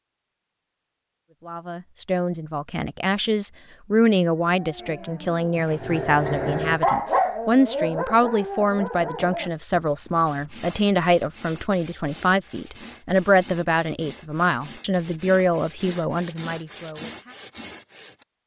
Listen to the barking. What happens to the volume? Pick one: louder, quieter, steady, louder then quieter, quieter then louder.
louder then quieter.